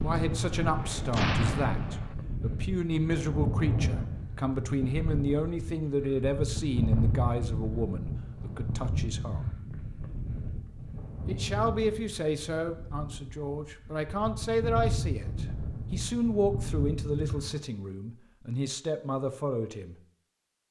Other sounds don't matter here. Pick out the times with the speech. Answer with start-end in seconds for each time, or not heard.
0.0-9.4, 11.2-19.9.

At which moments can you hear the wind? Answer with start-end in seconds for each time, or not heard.
0.0-17.6.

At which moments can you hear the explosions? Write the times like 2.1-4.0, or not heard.
1.1-2.1.